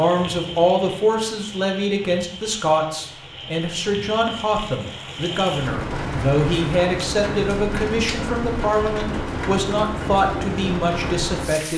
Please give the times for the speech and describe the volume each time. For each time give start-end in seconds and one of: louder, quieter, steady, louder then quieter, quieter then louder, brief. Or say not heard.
0.0-11.7 steady.